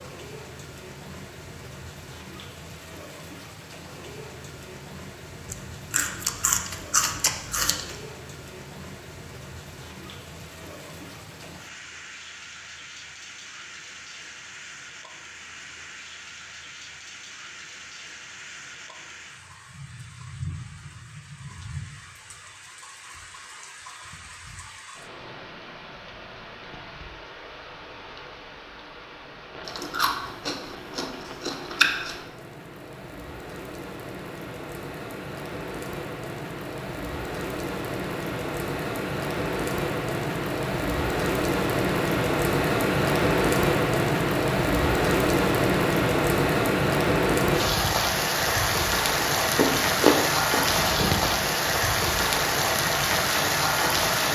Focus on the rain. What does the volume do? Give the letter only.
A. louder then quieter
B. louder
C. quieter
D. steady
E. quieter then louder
B.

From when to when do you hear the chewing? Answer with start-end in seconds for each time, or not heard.
5.5-8.0, 29.6-32.2, 49.4-51.3.